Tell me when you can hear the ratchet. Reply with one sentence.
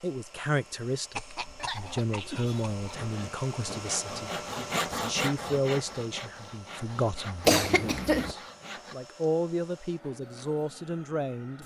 You can't hear the ratchet here.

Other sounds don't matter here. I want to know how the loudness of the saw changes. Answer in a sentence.
The loudness of the saw goes up, then down.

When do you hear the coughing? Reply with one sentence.
You can hear the coughing from 1.1 to 3.1 s and from 7.5 to 8.3 s.